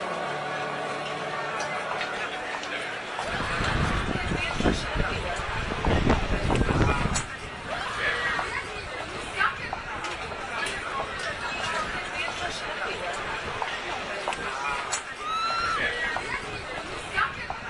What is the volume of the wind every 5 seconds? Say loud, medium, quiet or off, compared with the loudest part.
loud, loud, quiet, quiet.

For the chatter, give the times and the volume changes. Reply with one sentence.
The chatter can be heard from 0.0 to 17.6 s, at a steady volume.